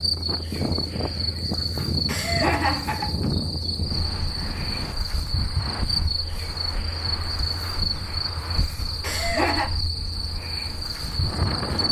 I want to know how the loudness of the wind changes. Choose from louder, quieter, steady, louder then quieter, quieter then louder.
quieter.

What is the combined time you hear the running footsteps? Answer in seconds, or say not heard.
not heard.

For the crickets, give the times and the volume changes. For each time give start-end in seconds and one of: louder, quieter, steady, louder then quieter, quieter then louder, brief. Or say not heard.
0.0-11.8 steady.